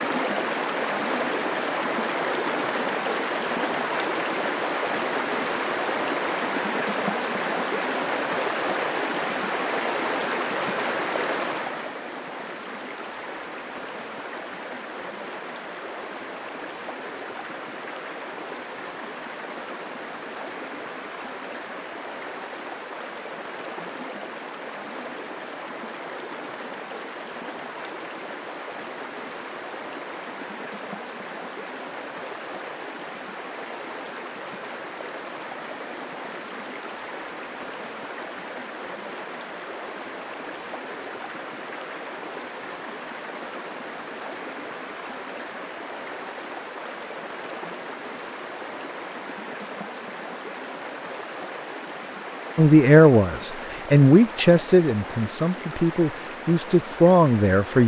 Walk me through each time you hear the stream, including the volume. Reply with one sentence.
The stream can be heard from 0.0 to 57.8 s, getting quieter.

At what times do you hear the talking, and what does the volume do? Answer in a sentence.
The talking can be heard from 52.5 to 57.8 s, getting quieter then louder.